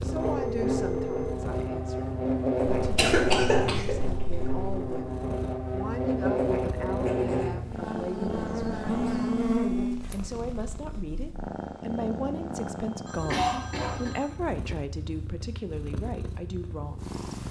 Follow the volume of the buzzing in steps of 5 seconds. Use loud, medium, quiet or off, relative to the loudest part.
loud, loud, off, off.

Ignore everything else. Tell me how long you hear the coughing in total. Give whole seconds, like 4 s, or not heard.
3 s.